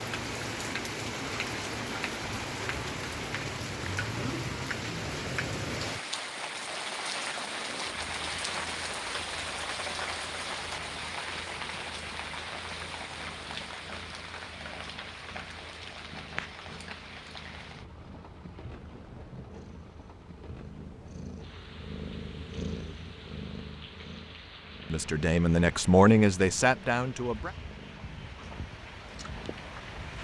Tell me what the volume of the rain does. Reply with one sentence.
The volume of the rain goes down.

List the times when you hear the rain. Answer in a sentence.
The rain can be heard from 0.0 to 30.1 s.